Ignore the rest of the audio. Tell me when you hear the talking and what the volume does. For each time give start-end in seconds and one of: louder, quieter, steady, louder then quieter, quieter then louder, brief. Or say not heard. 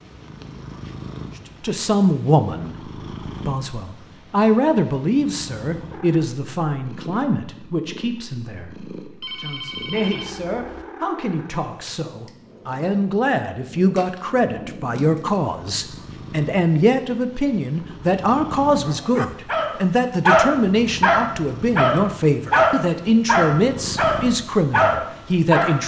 1.6-25.8 quieter then louder.